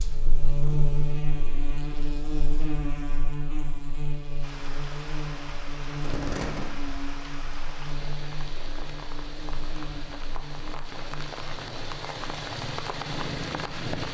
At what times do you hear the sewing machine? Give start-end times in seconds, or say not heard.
not heard.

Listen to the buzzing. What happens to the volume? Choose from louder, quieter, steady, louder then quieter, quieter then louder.
quieter.